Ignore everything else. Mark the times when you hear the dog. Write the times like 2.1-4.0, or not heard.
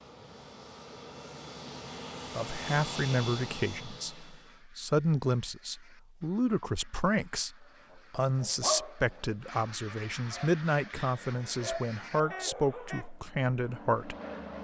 7.9-13.1.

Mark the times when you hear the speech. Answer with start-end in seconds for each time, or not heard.
2.4-14.2.